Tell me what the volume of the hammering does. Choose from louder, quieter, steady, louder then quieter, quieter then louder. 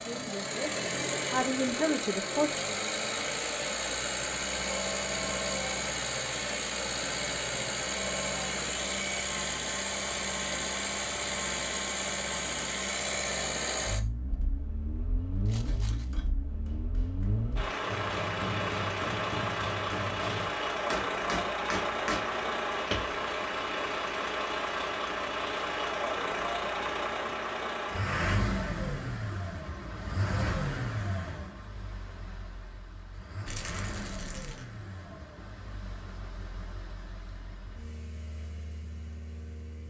louder.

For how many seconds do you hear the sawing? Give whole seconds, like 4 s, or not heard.
not heard.